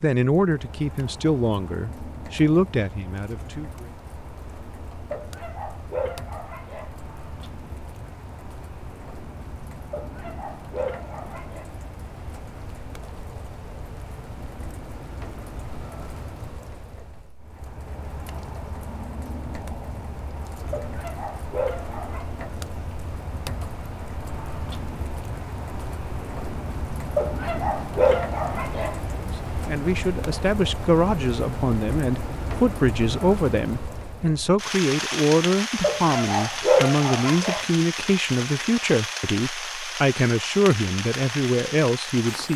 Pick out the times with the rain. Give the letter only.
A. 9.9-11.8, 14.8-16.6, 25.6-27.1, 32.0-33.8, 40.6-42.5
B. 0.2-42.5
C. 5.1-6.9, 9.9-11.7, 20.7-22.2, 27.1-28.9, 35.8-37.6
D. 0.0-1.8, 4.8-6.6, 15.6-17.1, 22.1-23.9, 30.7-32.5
B.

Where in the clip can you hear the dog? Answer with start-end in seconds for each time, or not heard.
5.1-6.9, 9.9-11.7, 20.7-22.2, 27.1-28.9, 35.8-37.6.